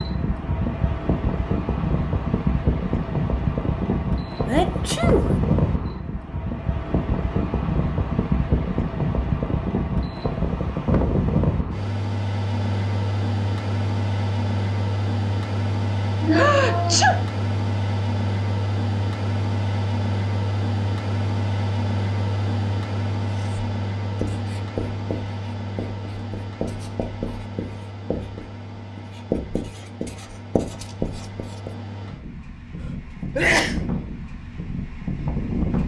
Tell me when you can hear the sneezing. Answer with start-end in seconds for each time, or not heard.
4.5-5.3, 16.2-17.2, 32.8-33.8.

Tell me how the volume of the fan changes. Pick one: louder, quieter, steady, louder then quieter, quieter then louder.
quieter.